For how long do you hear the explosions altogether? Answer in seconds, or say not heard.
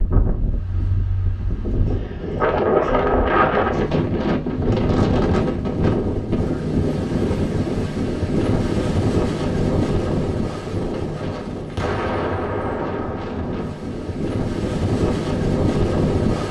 2 s.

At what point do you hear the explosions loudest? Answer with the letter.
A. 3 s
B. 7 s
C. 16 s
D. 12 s
D.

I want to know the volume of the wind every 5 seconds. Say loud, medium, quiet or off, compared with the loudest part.
loud, loud, medium, loud.